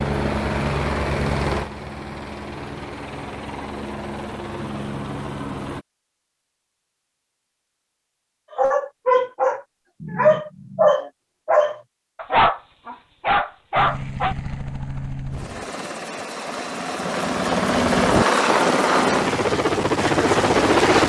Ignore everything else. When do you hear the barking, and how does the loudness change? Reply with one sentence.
You can hear the barking from 8.6 to 14.3 s, at a steady volume.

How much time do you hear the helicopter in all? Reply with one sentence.
The helicopter can be heard for 13 seconds in total.